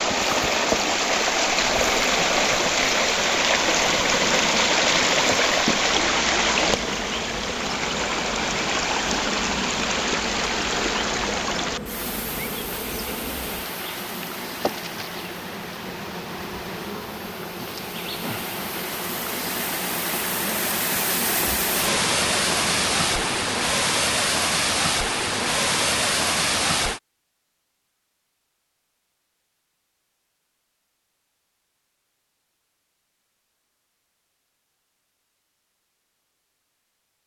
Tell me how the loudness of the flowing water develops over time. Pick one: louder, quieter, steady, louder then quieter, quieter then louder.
quieter then louder.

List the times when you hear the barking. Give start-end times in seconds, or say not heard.
not heard.